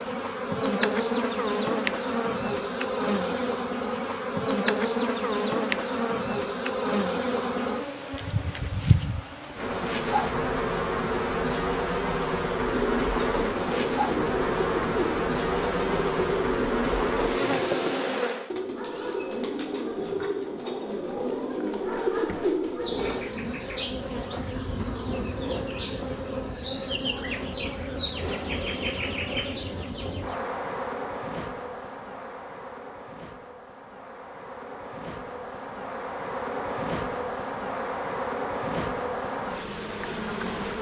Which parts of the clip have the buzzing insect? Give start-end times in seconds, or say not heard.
0.0-18.5, 22.8-40.7.